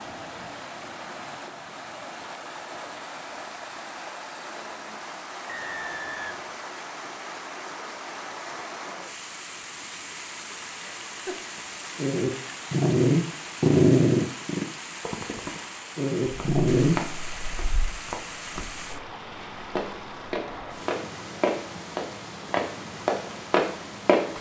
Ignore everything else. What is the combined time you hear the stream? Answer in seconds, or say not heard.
24 s.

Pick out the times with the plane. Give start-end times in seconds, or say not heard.
not heard.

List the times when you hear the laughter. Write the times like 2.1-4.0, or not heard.
10.7-11.4.